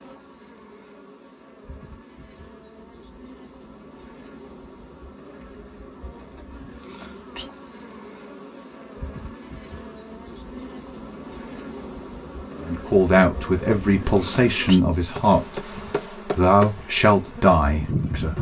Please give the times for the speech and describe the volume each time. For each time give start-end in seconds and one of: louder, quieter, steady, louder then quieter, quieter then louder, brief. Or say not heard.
12.6-18.3 steady.